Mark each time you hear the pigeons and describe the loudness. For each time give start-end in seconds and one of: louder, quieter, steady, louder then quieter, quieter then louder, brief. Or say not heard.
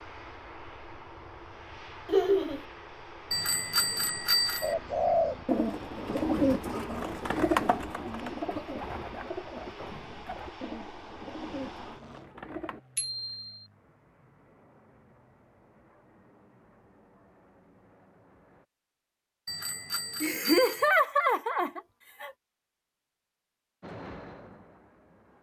4.6-12.8 quieter.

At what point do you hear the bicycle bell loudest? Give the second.
4 s.